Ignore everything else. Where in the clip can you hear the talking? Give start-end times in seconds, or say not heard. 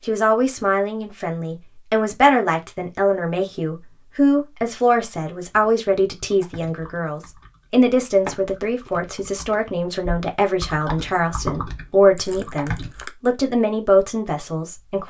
0.1-15.0.